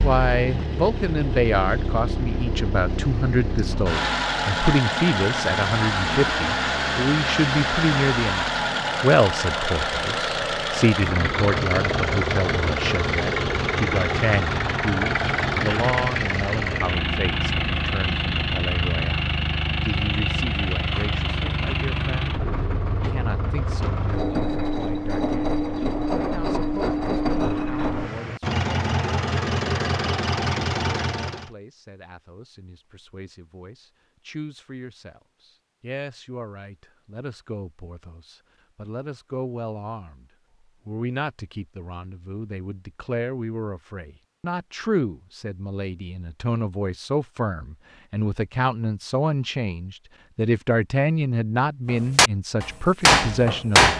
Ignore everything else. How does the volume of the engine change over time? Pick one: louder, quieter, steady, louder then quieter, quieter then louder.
steady.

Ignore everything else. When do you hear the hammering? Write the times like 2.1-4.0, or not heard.
51.9-53.9.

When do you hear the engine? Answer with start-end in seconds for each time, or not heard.
0.0-31.5.